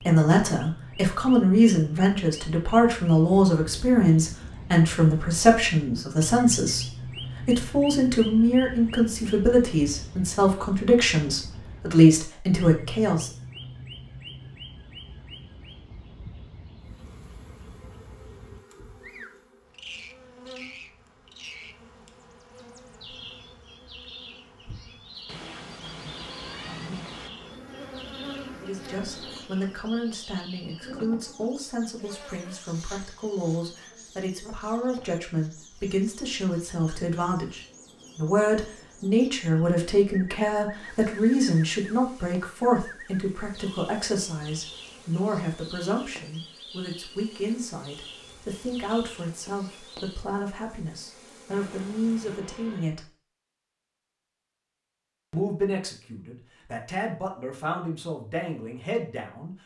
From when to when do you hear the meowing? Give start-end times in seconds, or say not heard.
25.2-27.3, 51.5-52.9.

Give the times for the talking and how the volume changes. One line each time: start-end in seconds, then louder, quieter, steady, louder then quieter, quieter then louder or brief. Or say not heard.
0.1-13.3 steady
28.6-53.1 louder then quieter
55.3-59.5 steady.